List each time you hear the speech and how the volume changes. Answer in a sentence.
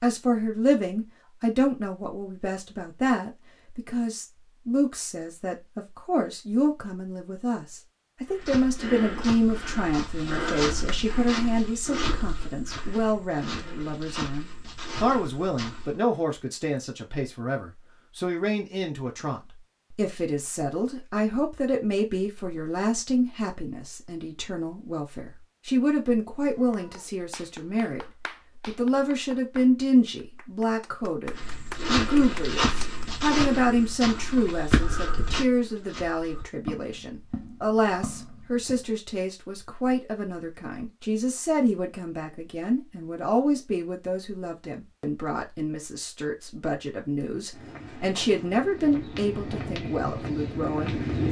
The speech can be heard from 0.0 to 51.2 s, at a steady volume.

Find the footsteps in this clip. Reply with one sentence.
The footsteps can be heard from 8.2 to 16.0 s, from 31.2 to 38.9 s and from 47.5 to 51.2 s.